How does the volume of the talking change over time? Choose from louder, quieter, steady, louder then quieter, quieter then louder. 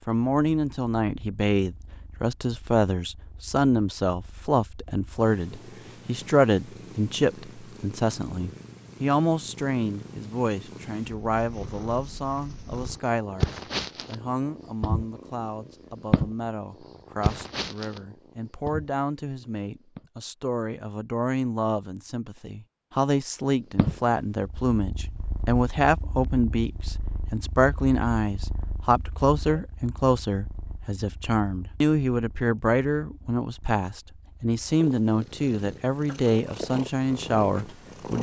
quieter then louder.